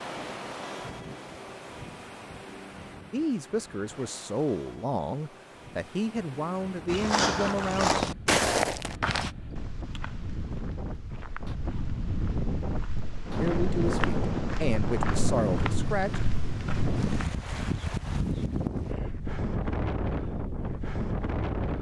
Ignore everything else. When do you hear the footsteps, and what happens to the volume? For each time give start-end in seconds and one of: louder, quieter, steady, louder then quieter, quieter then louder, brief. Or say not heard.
6.8-17.2 quieter then louder.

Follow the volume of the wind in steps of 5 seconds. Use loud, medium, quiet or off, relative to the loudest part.
medium, quiet, loud, loud, loud.